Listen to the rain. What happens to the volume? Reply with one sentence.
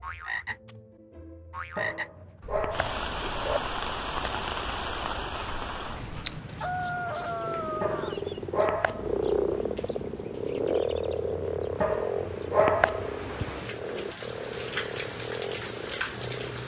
The volume of the rain goes down, then up.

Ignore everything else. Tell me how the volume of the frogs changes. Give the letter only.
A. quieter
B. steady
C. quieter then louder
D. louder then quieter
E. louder
D.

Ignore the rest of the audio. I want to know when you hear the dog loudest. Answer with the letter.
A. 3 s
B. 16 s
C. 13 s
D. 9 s
C.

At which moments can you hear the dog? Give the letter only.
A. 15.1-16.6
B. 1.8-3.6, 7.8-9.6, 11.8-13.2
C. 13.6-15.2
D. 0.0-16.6
B.